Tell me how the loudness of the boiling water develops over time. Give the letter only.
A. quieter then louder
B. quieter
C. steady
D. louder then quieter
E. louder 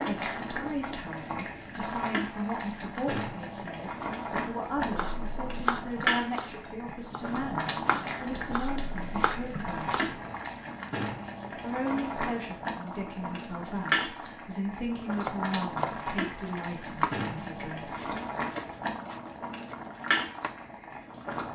C.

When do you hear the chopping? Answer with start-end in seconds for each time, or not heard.
4.8-10.3, 15.2-20.6.